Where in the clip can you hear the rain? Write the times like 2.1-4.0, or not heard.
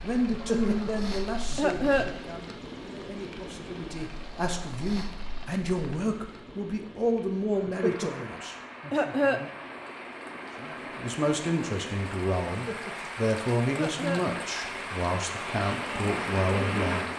0.0-17.1.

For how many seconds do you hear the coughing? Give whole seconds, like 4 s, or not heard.
6 s.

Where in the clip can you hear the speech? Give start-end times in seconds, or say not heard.
0.0-8.6, 10.6-17.1.